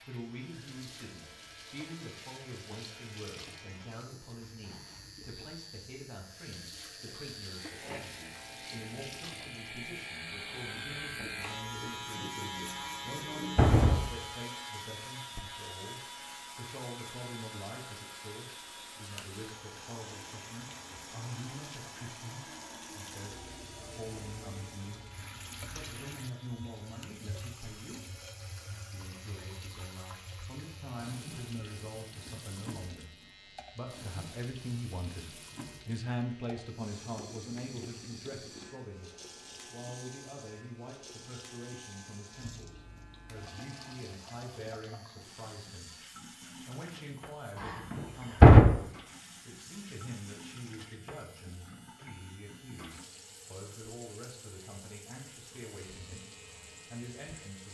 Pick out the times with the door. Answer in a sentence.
You can hear the door from 12.8 to 14.1 s and from 47.6 to 48.6 s.